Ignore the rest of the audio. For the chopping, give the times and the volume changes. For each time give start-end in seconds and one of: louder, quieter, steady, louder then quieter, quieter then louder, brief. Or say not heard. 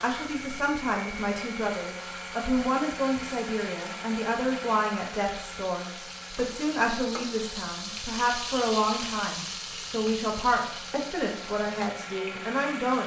not heard.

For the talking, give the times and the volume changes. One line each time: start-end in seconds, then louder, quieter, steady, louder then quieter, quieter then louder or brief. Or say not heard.
0.0-13.0 steady.